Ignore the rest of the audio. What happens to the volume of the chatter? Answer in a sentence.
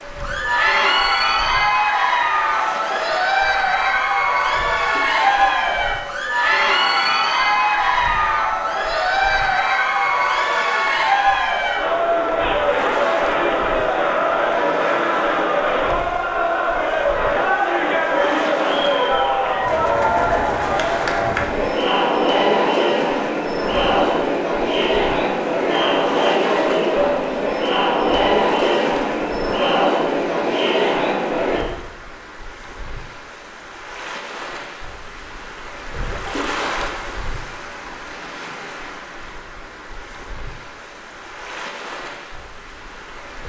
The loudness of the chatter stays about the same.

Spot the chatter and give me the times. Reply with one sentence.
You can hear the chatter from 0.1 to 31.6 s.